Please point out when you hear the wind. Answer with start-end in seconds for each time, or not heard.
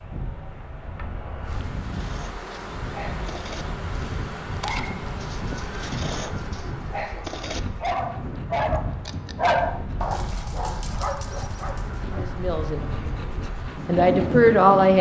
0.0-14.9.